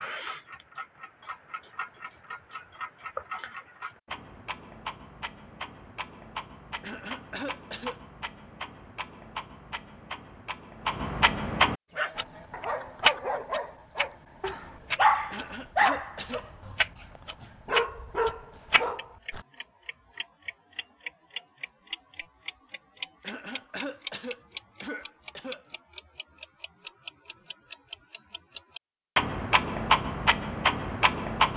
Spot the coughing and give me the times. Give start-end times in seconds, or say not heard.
6.8-8.0, 15.3-16.4, 23.2-25.6.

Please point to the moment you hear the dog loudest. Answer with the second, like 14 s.
15 s.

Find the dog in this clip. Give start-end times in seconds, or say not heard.
11.9-19.4.